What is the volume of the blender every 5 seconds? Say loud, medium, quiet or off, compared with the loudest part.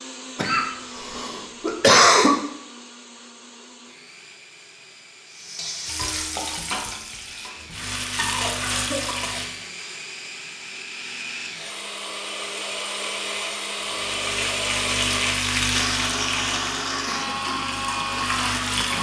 quiet, quiet, loud, loud.